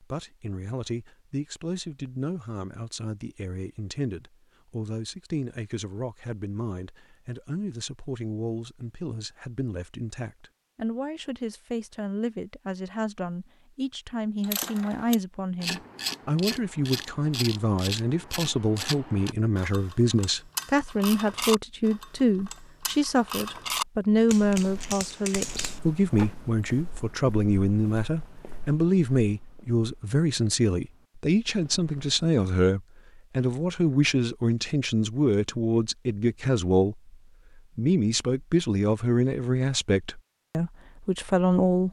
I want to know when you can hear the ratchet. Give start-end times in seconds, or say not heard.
14.4-26.4.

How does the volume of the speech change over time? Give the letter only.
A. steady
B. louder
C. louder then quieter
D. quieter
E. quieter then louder
B.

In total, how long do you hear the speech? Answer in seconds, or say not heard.
41 s.